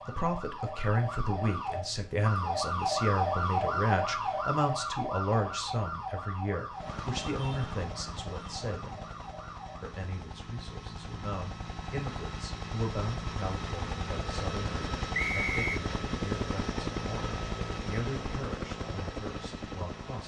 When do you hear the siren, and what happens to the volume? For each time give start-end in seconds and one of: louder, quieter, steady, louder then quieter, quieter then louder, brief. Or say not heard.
0.0-10.0 louder then quieter.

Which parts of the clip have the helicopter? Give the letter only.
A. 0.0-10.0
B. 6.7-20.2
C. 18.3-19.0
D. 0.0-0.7
B.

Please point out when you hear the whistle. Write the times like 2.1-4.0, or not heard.
15.1-15.8.